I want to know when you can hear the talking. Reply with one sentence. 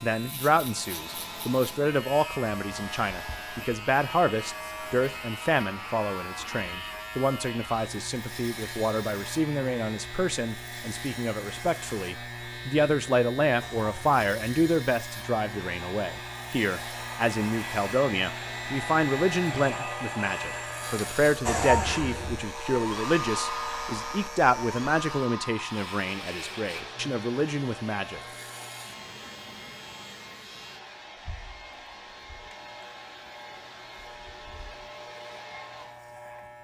The talking can be heard from 0.0 to 28.2 s.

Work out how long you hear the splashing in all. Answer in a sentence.
The splashing can't be heard in this clip.